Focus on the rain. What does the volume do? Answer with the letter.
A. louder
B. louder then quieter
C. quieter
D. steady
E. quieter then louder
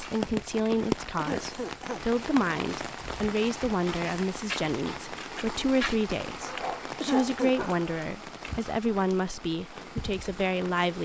C.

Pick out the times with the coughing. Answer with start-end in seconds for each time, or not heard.
1.1-2.0, 7.0-7.7.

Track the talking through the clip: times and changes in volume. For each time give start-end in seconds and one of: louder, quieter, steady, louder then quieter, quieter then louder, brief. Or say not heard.
0.0-11.0 steady.